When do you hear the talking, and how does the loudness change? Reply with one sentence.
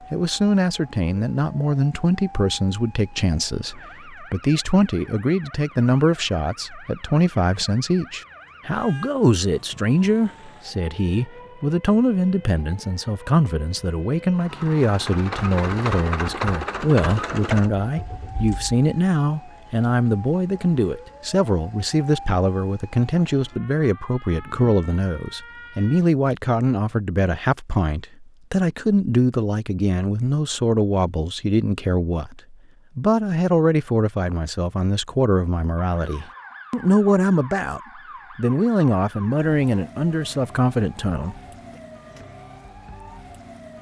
The talking can be heard from 0.1 to 41.4 s, at a steady volume.